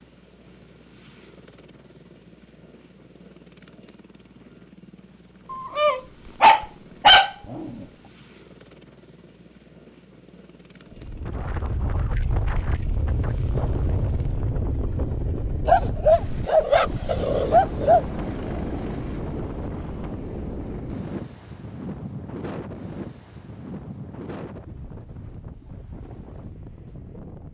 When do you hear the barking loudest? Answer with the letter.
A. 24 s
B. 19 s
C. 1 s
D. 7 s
D.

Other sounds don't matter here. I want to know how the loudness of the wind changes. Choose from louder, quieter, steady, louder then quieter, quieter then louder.
quieter.